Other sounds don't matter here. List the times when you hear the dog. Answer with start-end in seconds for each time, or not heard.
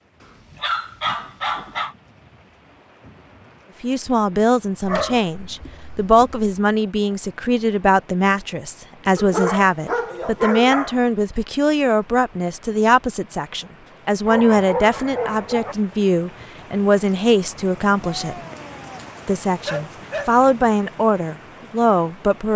0.6-1.9, 4.8-6.3, 9.2-11.0, 14.2-15.8, 18.0-20.4.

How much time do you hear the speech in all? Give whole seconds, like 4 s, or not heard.
18 s.